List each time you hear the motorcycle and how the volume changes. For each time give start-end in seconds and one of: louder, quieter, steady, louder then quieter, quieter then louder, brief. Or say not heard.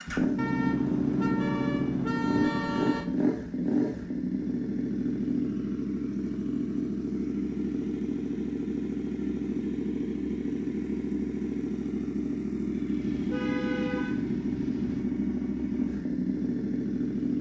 0.0-17.3 steady.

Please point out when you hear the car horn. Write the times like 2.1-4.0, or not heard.
0.3-3.0, 13.0-15.1.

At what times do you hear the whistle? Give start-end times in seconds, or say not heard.
not heard.